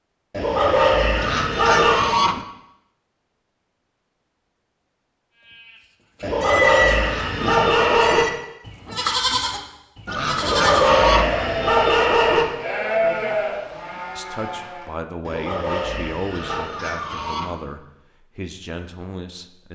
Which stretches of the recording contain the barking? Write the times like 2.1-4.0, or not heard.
0.3-2.0, 6.2-8.2, 10.4-12.4, 15.2-16.8.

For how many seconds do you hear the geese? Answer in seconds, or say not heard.
5 s.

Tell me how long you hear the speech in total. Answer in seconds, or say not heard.
6 s.